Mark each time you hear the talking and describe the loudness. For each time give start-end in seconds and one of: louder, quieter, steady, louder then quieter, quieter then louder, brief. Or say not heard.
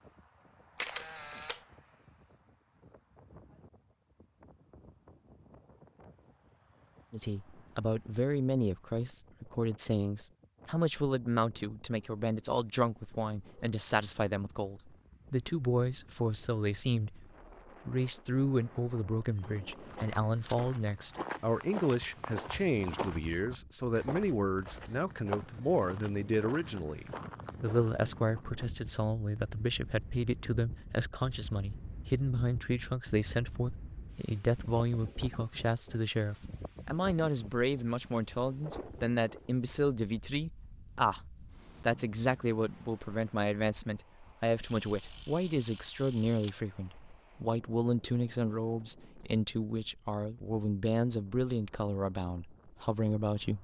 7.1-53.5 steady.